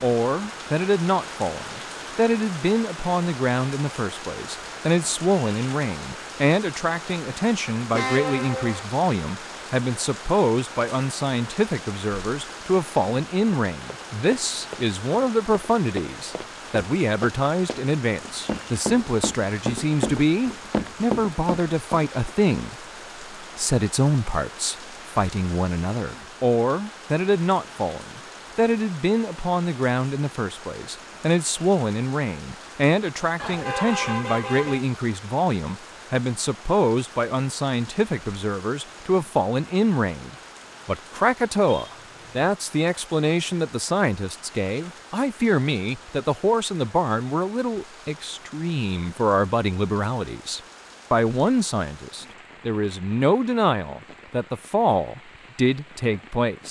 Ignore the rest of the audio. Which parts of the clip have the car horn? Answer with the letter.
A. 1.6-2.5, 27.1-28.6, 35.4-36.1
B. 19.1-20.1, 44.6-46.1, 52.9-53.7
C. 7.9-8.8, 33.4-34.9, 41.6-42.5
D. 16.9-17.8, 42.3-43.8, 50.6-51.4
C.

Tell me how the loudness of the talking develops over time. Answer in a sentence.
The volume of the talking stays about the same.